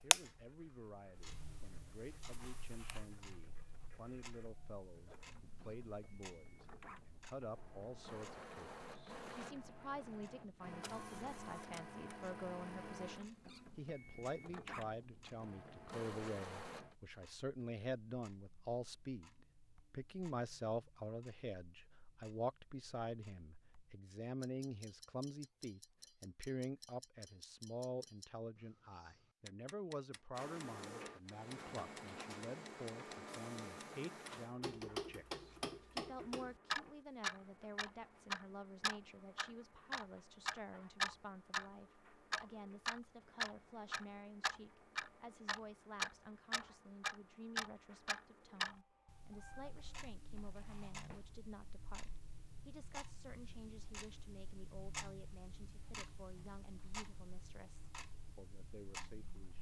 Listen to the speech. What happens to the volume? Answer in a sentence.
The loudness of the speech goes up, then down.